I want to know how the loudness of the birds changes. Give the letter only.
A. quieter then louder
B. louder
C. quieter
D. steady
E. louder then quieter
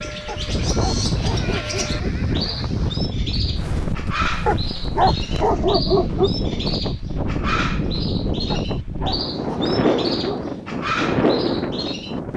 D.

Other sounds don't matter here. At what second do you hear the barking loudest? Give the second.
6 s.